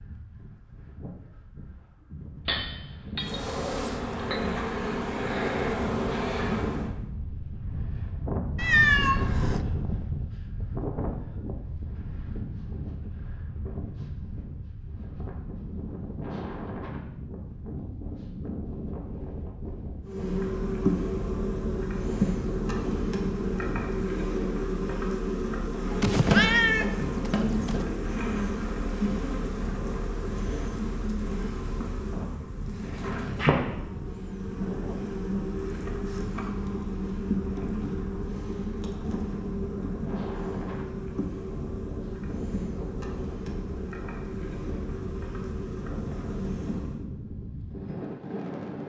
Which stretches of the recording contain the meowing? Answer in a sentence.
The meowing can be heard from 8.6 to 9.7 s and from 25.9 to 27.8 s.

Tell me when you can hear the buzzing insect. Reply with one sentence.
You can hear the buzzing insect from 3.1 to 6.9 s and from 20.1 to 47.0 s.